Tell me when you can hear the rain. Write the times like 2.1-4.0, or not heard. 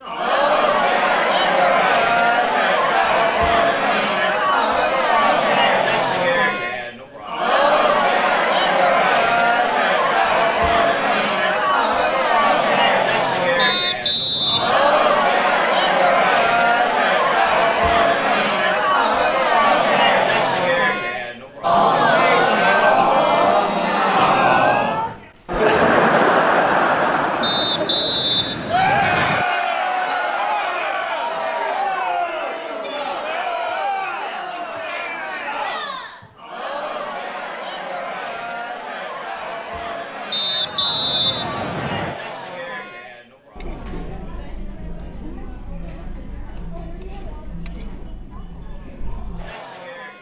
not heard.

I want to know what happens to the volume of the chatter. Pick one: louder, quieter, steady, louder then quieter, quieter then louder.
quieter.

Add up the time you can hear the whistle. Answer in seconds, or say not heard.
5 s.